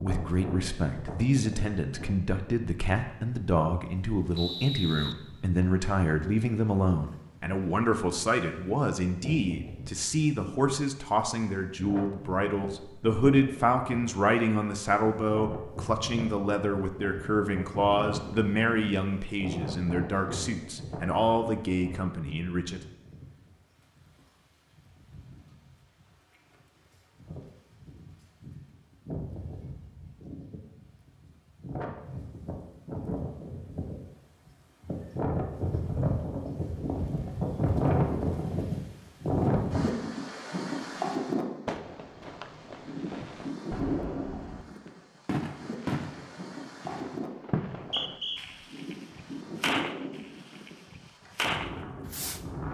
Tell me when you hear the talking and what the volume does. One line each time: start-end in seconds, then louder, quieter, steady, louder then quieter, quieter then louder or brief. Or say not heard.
0.0-22.8 steady.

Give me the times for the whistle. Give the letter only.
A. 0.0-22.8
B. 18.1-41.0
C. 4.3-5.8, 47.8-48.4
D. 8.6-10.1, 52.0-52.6
C.